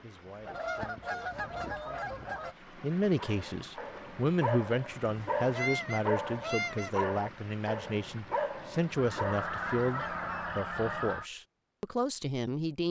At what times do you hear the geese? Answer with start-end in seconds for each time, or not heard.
0.5-2.5, 5.2-6.9, 8.9-11.2.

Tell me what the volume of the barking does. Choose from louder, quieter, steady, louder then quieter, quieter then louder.
steady.